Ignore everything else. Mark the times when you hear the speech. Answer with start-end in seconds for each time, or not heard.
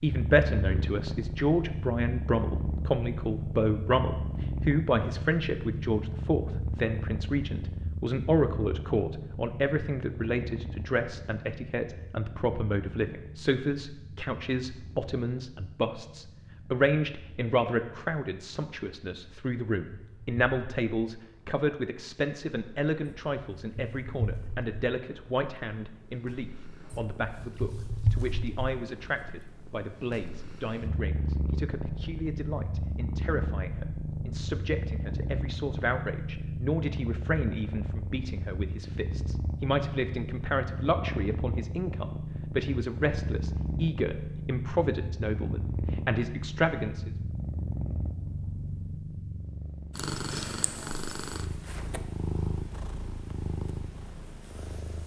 0.0-47.1.